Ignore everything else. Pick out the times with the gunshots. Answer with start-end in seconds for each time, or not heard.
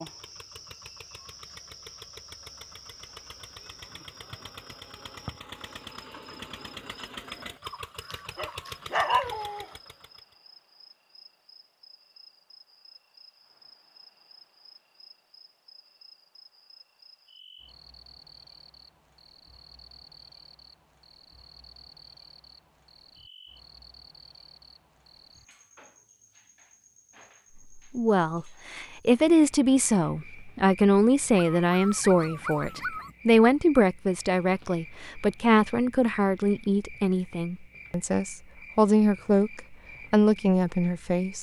not heard.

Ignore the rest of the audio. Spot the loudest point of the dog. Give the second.
9 s.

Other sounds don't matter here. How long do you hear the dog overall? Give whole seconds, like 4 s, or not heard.
4 s.